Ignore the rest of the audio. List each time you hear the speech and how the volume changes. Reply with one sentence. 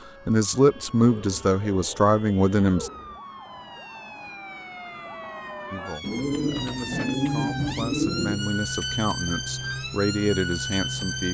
The speech can be heard briefly from 0.2 to 2.9 s; and from 5.7 to 11.2 s, getting louder.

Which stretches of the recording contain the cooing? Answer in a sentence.
The cooing can be heard from 0.6 to 3.2 s and from 6.0 to 8.4 s.